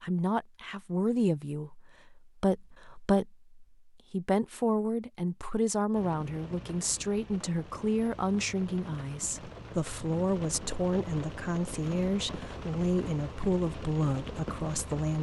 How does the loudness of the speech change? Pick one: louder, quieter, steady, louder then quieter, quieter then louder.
steady.